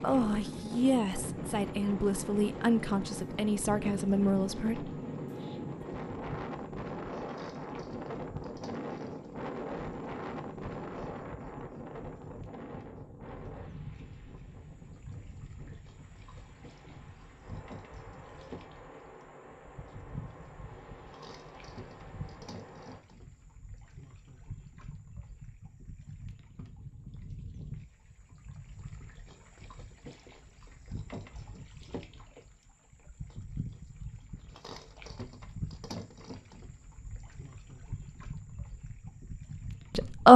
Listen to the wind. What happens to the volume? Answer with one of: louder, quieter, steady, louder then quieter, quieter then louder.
quieter.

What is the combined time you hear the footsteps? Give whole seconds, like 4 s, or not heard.
not heard.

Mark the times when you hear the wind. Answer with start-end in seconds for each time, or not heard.
0.0-23.0.